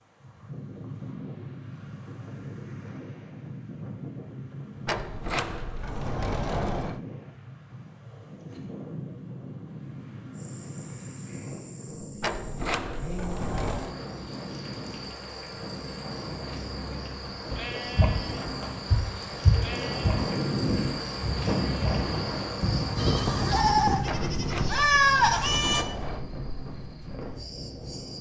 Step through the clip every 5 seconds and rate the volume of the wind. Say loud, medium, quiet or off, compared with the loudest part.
medium, medium, medium, medium, loud, medium.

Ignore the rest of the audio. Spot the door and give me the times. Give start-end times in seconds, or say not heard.
4.8-7.0, 12.2-13.9, 24.1-26.2.